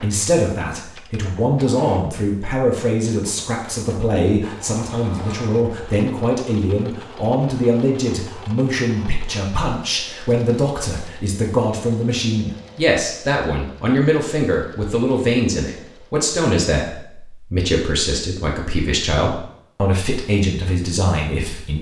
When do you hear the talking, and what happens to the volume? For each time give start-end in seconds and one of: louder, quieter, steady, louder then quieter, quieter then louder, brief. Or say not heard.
0.0-21.7 steady.